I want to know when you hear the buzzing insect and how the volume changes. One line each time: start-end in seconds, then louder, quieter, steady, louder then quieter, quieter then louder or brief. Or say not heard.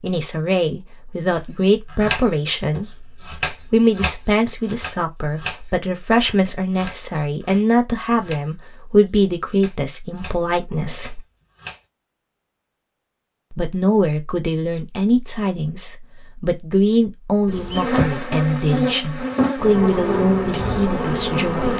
17.4-21.7 steady.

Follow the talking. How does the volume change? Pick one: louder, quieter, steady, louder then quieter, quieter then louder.
steady.